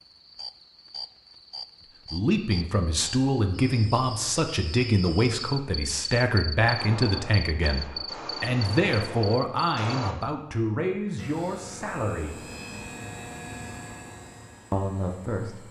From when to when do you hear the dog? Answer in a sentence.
The dog can't be heard in this clip.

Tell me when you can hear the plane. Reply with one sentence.
The plane can be heard from 11.2 to 15.6 s.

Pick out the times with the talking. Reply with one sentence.
You can hear the talking from 2.1 to 12.4 s and from 14.7 to 15.6 s.